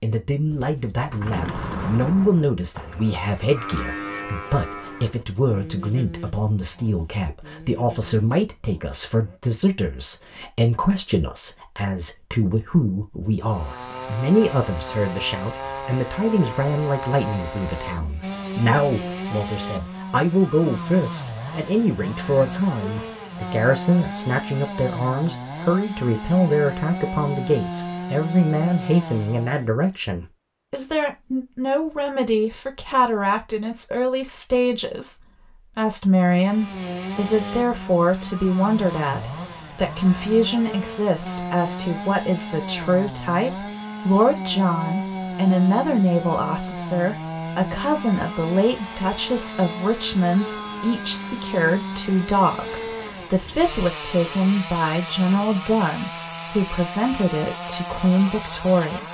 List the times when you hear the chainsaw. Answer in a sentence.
The chainsaw can be heard from 13.4 to 29.7 s and from 36.3 to 59.0 s.